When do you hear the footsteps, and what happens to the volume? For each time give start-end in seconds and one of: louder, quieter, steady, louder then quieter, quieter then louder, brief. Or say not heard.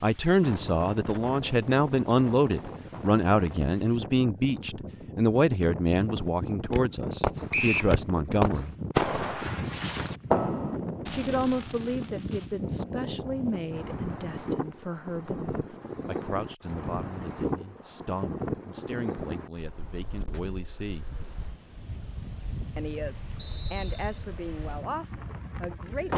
not heard.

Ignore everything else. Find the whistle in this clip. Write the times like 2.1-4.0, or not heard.
7.5-8.0, 23.4-24.2.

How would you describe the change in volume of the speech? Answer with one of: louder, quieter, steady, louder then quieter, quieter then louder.
quieter.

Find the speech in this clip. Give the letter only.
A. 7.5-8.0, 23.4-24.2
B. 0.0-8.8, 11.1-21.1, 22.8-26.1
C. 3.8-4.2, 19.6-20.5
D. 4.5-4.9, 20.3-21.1
B.